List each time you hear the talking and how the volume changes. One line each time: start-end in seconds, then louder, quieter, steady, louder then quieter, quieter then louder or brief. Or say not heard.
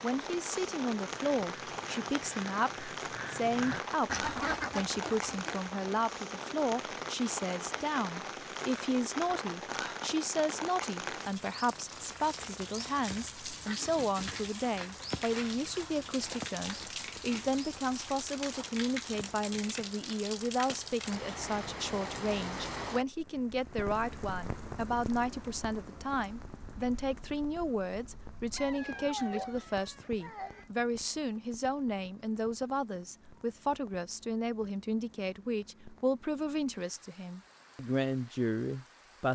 0.0-39.2 steady.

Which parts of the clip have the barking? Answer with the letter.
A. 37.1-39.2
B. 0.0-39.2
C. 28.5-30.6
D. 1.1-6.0
C.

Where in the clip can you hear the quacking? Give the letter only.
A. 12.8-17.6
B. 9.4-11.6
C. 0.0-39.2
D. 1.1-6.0
D.